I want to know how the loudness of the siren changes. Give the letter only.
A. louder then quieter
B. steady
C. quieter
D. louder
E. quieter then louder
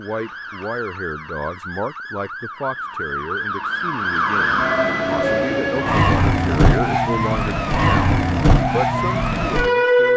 D.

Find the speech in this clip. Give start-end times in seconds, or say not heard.
0.0-10.1.